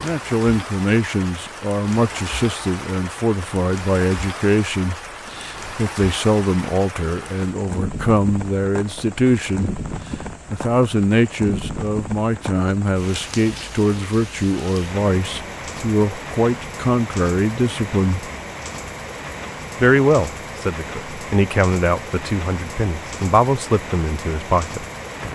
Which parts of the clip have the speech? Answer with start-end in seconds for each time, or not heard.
0.0-9.7, 10.5-18.3, 19.8-24.9.